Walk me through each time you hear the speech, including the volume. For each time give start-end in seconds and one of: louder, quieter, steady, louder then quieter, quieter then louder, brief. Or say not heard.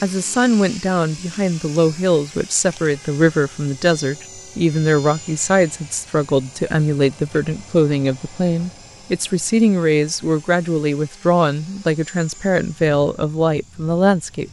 0.0-14.4 steady.